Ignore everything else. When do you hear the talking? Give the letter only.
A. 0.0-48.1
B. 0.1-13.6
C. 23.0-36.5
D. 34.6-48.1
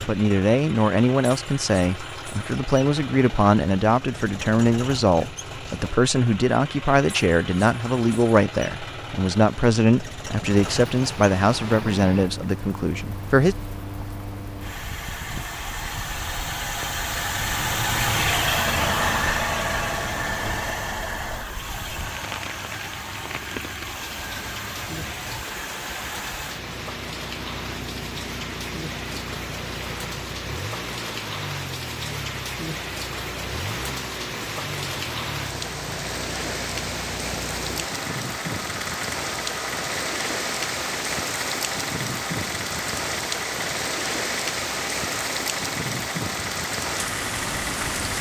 B.